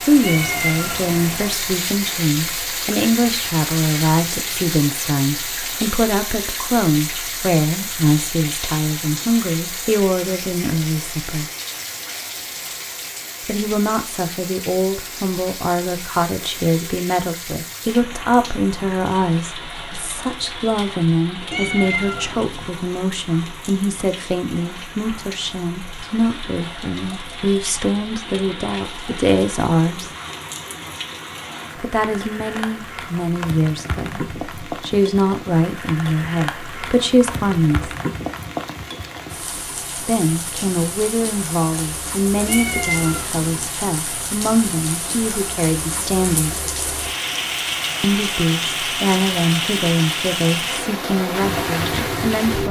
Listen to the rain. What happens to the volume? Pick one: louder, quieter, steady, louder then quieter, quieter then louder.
quieter then louder.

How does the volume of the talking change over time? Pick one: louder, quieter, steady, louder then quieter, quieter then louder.
steady.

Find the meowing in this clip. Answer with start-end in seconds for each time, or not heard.
0.2-1.4, 21.5-22.7, 42.5-43.7.